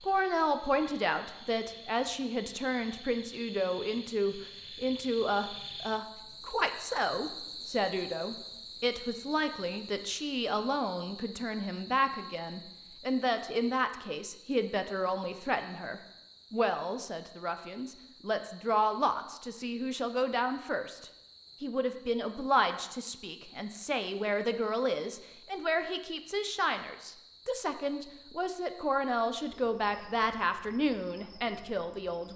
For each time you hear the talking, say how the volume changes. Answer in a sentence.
The talking can be heard from 0.0 to 32.3 s, at a steady volume.